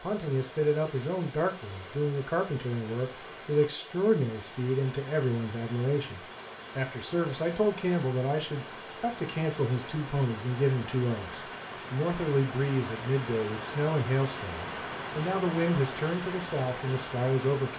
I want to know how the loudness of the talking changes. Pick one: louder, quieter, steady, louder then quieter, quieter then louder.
steady.